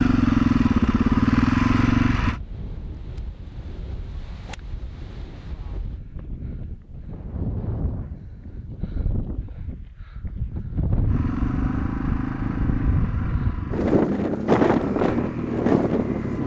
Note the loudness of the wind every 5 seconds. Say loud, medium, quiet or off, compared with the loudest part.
quiet, quiet, loud, loud.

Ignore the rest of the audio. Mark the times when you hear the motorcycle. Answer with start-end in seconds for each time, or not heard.
0.0-2.4, 11.1-16.4.